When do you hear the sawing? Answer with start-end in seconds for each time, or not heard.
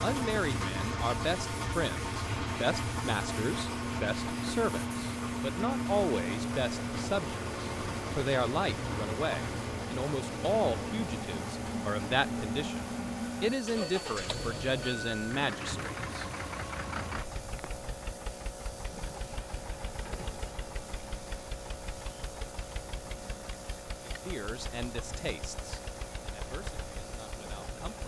not heard.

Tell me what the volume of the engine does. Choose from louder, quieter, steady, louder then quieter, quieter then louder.
quieter.